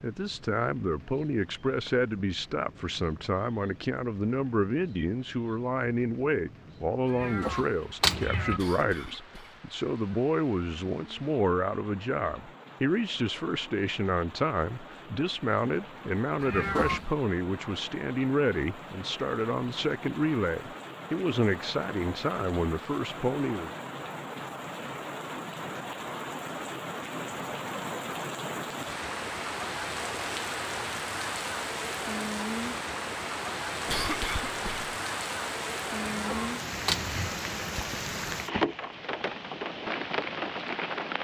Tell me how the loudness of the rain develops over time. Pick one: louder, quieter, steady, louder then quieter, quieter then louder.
louder.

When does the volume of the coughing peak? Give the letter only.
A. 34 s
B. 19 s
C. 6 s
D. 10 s
A.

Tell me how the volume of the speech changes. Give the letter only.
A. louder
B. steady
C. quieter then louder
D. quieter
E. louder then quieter
B.